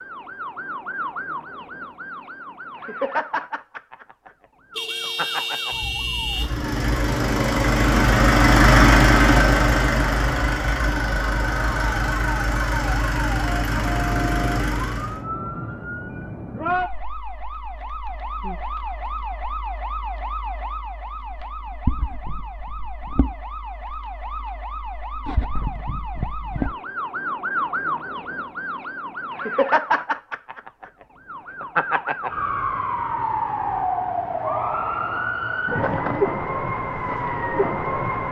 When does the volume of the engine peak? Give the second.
9 s.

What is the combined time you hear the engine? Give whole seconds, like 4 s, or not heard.
9 s.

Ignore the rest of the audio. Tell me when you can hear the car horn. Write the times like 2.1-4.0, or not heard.
4.8-6.5.